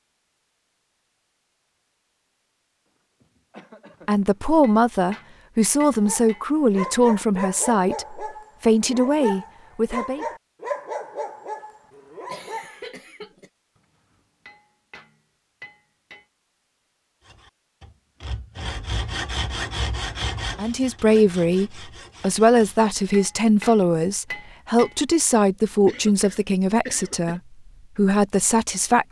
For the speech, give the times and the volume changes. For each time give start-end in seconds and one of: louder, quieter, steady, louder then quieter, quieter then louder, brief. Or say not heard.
4.0-10.2 steady
20.6-29.0 steady.